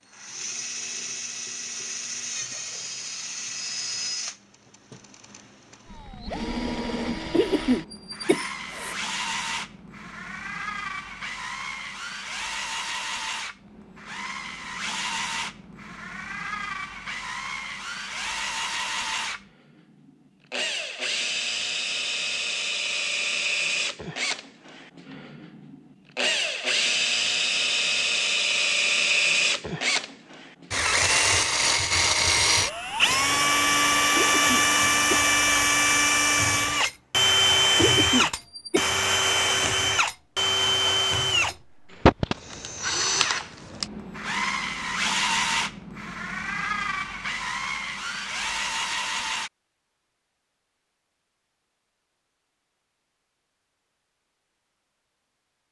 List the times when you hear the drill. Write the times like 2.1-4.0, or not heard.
0.1-49.5.